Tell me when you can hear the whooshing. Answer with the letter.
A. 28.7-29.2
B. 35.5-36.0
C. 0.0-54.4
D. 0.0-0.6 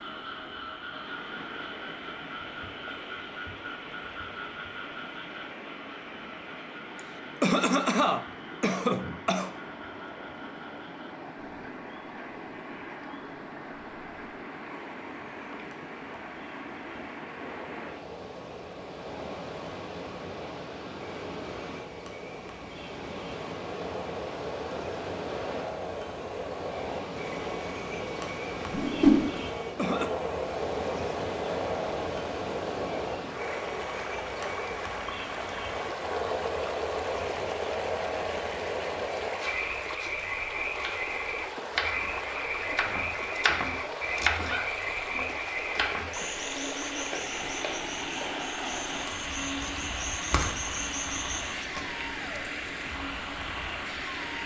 A.